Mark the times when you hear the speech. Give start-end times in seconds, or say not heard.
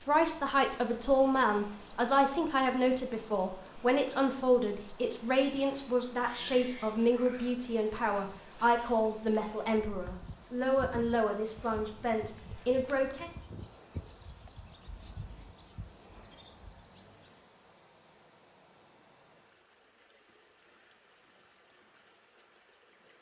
0.1-13.3.